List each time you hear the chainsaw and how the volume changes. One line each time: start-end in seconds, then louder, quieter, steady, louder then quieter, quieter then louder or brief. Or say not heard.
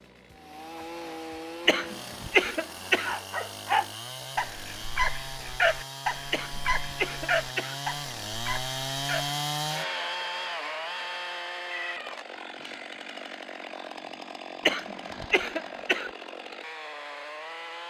0.0-17.8 louder then quieter.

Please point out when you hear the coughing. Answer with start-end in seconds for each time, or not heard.
1.6-3.1, 6.3-7.8, 14.7-16.1.